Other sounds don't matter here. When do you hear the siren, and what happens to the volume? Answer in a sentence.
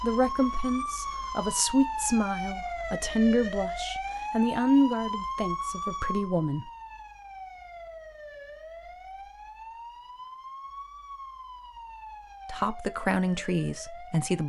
You can hear the siren from 0.0 to 14.4 s, getting quieter.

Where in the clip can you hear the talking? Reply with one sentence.
The talking can be heard from 0.0 to 6.7 s and from 12.4 to 14.4 s.